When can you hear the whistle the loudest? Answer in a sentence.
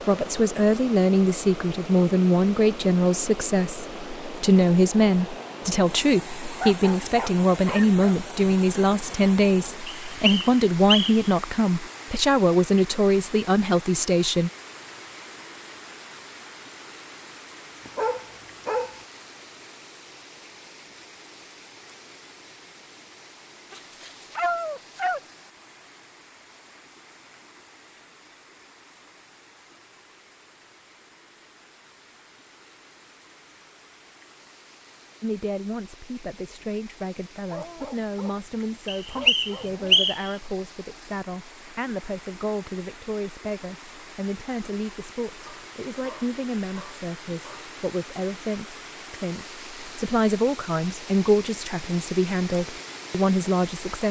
The volume of the whistle peaks at 40 seconds.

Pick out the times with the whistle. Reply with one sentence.
The whistle can be heard from 9.8 to 11.3 s and from 38.9 to 40.3 s.